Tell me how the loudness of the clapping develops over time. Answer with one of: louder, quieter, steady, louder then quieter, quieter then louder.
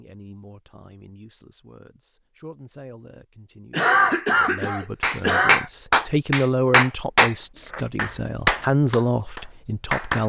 quieter.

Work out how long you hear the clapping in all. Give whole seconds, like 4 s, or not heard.
5 s.